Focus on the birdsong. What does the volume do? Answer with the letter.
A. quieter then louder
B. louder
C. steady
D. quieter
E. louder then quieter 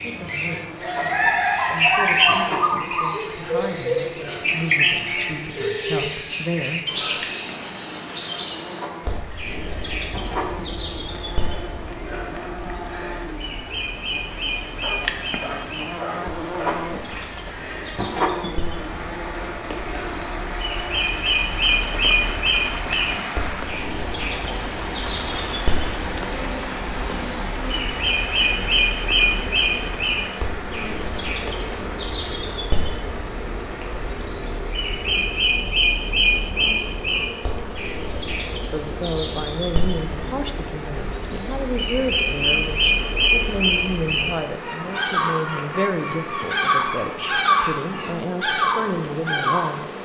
A.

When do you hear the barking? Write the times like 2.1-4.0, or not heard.
14.8-16.8.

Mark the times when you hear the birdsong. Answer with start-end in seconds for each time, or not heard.
0.0-50.0.